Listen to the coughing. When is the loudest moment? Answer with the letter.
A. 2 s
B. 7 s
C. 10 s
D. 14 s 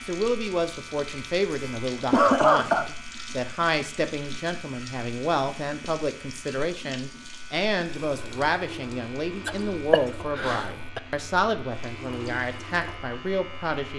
A.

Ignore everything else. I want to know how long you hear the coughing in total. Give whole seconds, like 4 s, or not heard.
3 s.